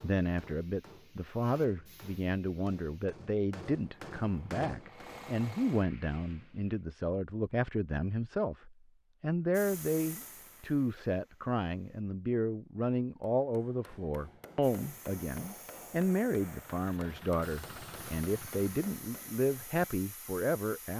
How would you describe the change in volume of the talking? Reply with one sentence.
The loudness of the talking stays about the same.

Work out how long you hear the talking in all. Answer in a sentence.
The talking can be heard for 21 seconds in total.